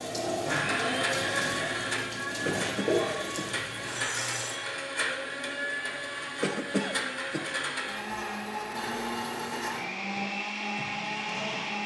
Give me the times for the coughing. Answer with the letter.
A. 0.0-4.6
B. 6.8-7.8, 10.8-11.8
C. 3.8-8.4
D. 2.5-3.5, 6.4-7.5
D.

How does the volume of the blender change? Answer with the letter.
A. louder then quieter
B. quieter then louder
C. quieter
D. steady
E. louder
D.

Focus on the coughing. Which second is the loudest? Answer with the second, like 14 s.
7 s.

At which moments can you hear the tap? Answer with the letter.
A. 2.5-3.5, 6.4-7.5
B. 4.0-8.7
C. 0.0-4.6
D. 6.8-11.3
C.